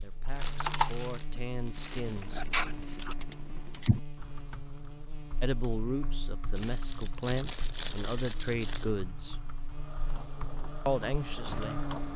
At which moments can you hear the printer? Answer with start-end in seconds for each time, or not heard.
9.7-12.1.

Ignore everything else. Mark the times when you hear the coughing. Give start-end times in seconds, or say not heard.
not heard.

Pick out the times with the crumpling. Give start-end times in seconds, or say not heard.
0.2-2.2, 6.5-8.9.